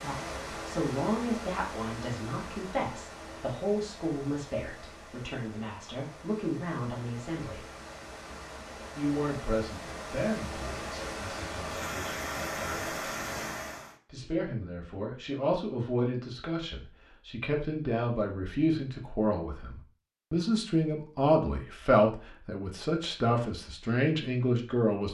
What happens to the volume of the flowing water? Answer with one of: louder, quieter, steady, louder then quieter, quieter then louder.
quieter then louder.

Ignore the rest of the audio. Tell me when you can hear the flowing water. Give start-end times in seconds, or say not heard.
0.0-13.9.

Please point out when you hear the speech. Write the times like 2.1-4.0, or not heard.
0.0-7.7, 8.9-12.9, 14.1-25.0.